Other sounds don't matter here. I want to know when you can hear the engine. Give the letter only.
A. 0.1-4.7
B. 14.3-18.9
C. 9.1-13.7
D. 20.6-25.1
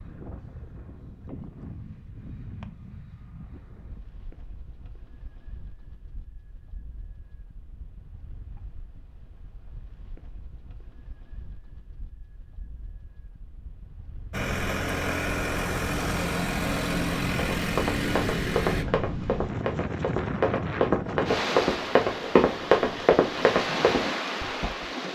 B.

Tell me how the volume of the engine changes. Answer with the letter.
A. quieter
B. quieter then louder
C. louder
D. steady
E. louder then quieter
D.